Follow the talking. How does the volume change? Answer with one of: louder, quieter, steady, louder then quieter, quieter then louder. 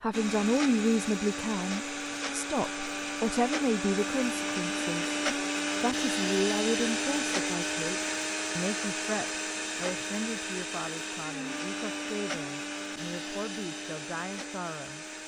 quieter.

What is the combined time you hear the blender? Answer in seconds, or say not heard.
15 s.